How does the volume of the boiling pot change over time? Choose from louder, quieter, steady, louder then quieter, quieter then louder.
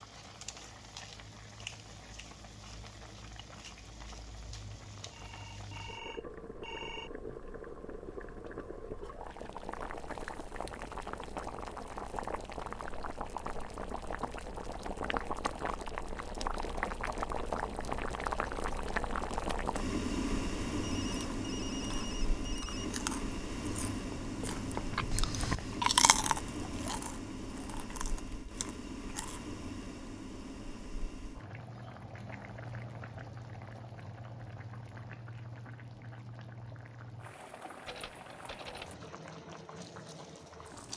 louder then quieter.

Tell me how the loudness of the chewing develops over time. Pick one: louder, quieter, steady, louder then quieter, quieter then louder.
louder then quieter.